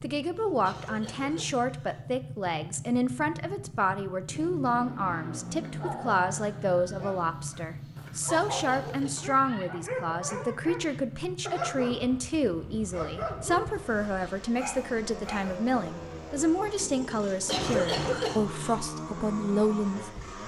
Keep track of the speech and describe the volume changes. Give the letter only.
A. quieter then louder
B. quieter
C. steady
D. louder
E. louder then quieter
C.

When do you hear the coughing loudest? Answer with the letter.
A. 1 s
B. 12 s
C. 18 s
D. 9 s
C.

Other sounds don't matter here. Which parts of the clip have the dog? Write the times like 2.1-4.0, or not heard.
5.6-15.6.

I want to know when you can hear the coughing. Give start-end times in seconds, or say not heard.
0.3-2.0, 8.2-9.2, 17.2-18.8.